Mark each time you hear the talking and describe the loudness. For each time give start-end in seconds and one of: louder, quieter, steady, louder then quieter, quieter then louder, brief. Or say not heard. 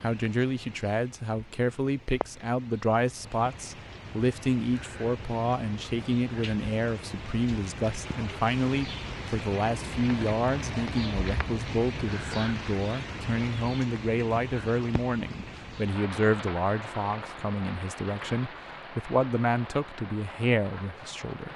0.0-21.5 steady.